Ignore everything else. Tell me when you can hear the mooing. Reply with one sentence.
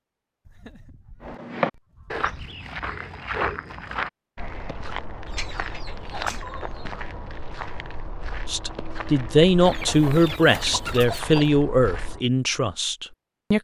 You can't hear the mooing here.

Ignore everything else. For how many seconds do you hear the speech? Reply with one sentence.
You can hear the speech for 5 seconds altogether.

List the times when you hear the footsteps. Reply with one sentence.
The footsteps can be heard from 1.2 to 12.2 s.